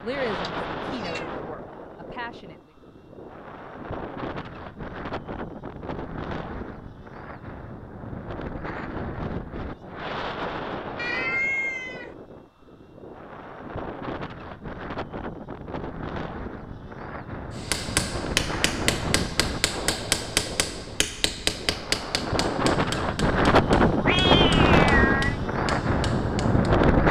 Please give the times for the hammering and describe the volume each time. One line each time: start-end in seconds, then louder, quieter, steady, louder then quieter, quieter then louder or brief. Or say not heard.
17.6-26.8 quieter.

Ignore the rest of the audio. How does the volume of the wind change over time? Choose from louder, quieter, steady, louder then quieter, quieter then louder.
louder.